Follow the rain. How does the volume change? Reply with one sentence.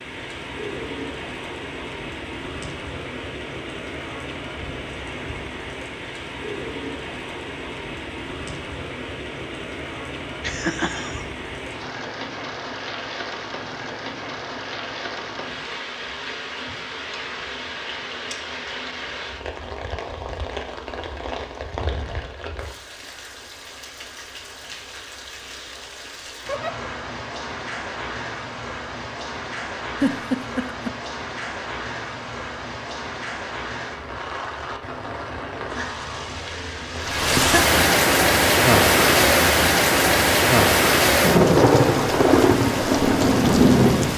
The volume of the rain goes up.